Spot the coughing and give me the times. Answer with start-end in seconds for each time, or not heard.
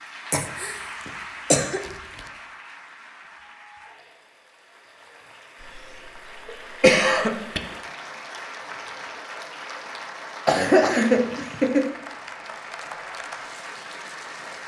0.3-2.2, 6.5-7.6, 10.4-11.8.